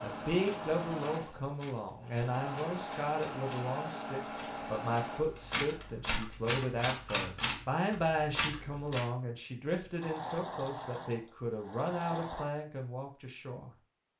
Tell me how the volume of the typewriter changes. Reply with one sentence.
The loudness of the typewriter goes up.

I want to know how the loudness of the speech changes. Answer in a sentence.
The loudness of the speech stays about the same.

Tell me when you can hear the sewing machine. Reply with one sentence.
The sewing machine can be heard from 0.0 to 6.0 s and from 10.0 to 12.4 s.